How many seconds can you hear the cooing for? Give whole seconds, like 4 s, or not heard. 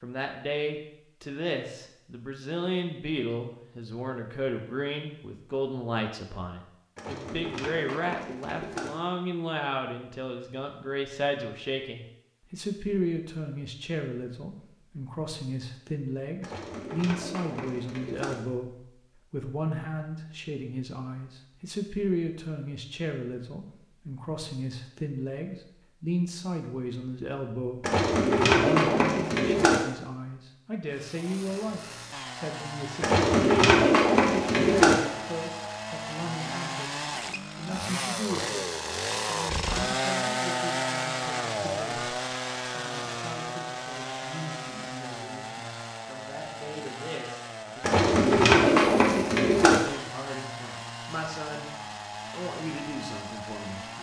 10 s.